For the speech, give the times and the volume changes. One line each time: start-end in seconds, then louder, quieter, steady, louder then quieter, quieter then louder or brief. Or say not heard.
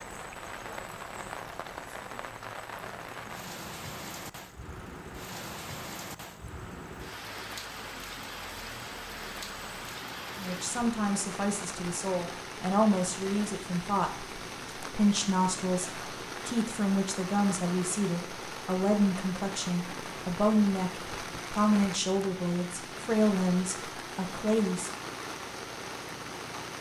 10.3-24.9 steady.